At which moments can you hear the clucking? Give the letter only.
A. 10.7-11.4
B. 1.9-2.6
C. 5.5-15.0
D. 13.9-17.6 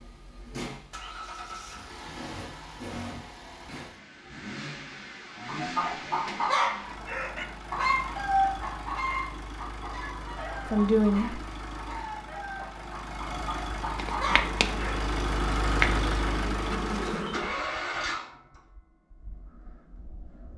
C.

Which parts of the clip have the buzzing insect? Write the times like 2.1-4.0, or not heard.
13.9-17.6.